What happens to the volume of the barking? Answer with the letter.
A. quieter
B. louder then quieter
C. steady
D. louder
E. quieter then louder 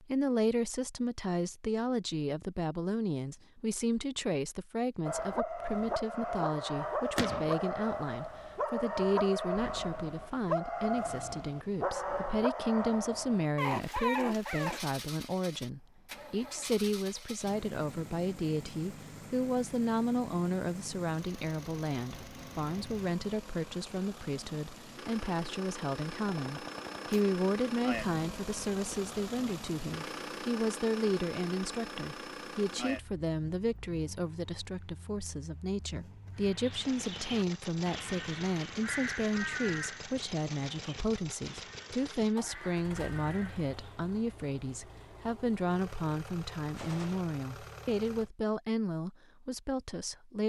C.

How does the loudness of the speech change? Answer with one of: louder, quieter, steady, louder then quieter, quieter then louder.
steady.